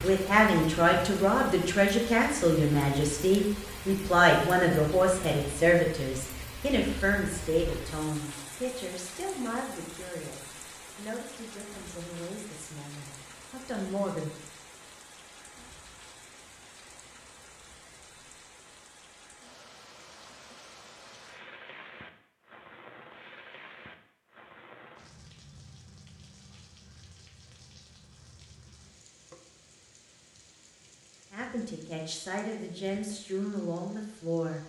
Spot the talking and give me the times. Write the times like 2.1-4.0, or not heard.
0.0-14.3, 31.3-34.6.